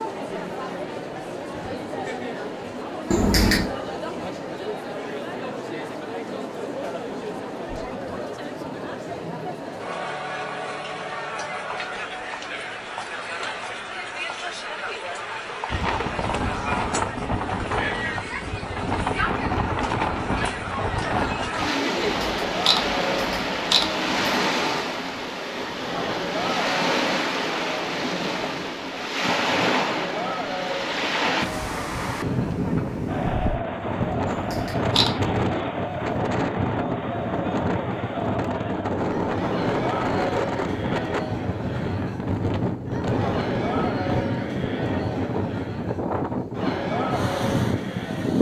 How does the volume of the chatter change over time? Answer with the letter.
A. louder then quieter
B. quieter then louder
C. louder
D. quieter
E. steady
E.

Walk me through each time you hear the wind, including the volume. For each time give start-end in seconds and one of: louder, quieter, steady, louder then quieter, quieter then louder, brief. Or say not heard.
15.7-48.3 steady.